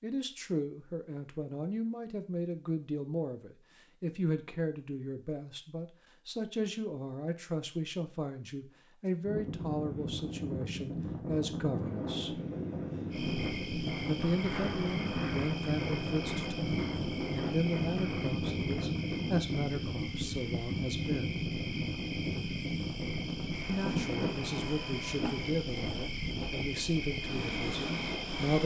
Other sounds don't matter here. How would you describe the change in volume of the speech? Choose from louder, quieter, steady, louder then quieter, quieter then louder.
steady.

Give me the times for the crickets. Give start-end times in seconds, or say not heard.
13.1-28.6.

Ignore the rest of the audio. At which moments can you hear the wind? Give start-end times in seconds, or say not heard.
9.2-28.6.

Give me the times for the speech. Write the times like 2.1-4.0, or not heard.
0.0-12.3, 14.0-21.4, 23.6-28.6.